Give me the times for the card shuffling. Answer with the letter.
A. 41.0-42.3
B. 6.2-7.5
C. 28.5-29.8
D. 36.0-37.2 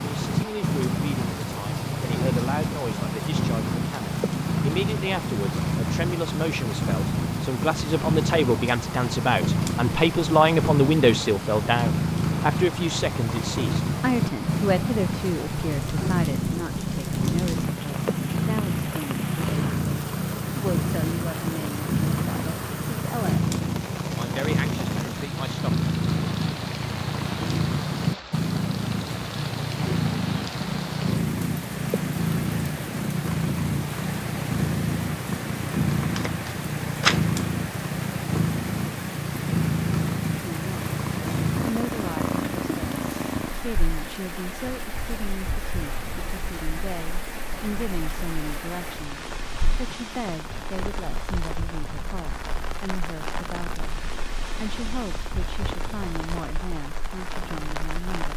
D.